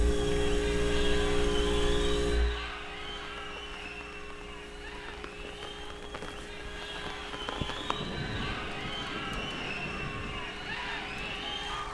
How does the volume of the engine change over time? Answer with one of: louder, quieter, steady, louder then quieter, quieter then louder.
quieter.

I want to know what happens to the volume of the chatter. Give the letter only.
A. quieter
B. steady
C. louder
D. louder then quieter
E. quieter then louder
E.